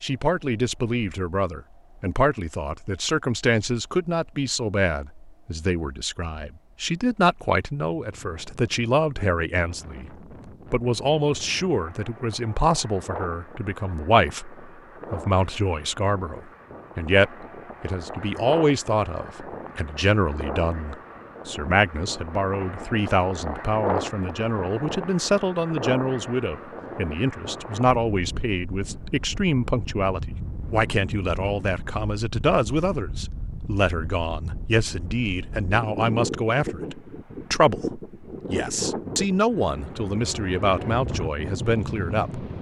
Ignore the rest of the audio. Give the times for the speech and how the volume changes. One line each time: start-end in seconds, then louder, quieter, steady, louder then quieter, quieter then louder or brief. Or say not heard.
0.0-10.1 steady
10.7-42.5 steady.